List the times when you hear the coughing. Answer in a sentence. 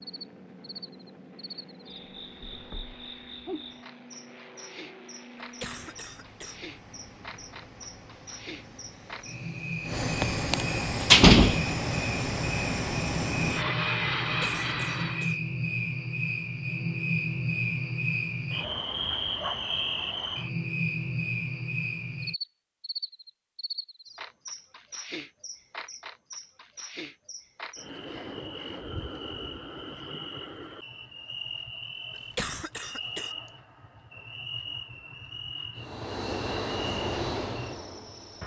You can hear the coughing from 5.4 to 6.6 s, from 14.4 to 15.4 s and from 32.1 to 33.4 s.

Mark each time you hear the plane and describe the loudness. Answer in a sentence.
You can hear the plane from 0.0 to 15.3 s, getting louder; and briefly from 35.8 to 38.4 s.